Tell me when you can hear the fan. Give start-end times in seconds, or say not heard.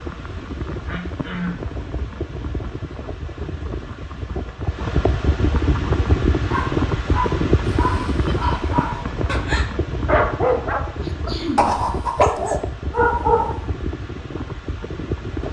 0.0-15.4.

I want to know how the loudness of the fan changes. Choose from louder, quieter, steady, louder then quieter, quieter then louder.
louder then quieter.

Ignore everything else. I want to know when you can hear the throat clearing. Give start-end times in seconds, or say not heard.
0.8-1.6, 8.2-8.7, 11.0-11.7.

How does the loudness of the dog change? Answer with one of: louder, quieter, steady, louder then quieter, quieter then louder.
louder.